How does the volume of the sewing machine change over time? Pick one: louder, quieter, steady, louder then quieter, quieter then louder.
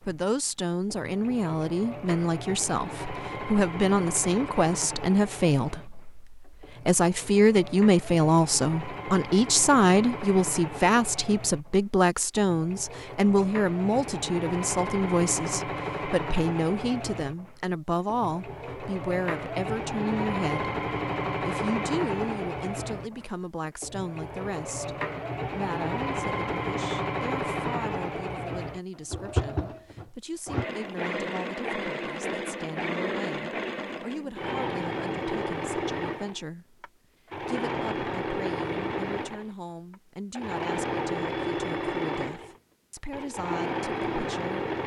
louder.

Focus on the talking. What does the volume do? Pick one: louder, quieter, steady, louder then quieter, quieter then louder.
quieter.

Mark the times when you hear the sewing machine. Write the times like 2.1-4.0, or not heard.
0.0-44.8.